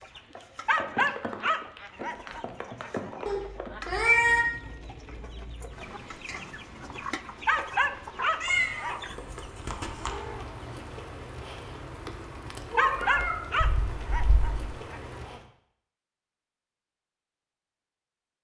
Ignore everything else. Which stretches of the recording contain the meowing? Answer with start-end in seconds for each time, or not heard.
3.2-4.5, 8.4-10.2, 12.7-14.4.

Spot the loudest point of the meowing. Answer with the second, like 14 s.
4 s.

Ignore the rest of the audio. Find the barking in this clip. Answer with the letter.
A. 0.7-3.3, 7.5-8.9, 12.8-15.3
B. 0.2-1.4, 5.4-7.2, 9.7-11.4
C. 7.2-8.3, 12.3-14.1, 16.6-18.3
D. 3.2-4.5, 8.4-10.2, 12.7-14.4
A.